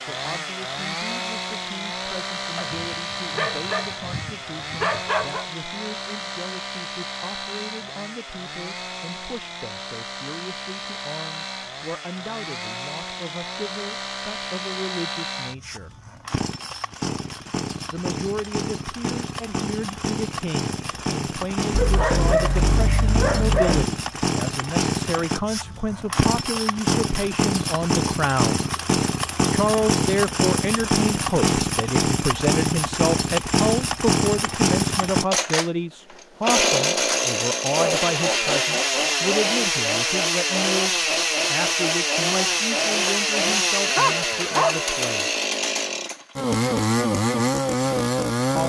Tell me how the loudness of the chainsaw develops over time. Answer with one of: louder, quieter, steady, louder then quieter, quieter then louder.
louder.